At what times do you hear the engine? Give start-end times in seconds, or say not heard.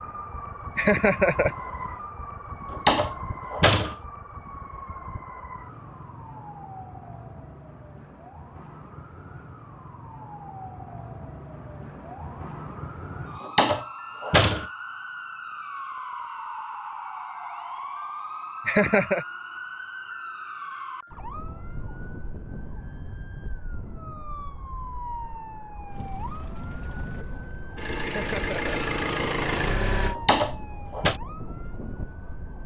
25.9-30.1.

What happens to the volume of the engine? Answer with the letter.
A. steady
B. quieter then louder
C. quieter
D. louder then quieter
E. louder
E.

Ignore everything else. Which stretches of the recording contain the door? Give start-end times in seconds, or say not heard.
2.7-4.0, 13.4-14.7, 30.1-31.2.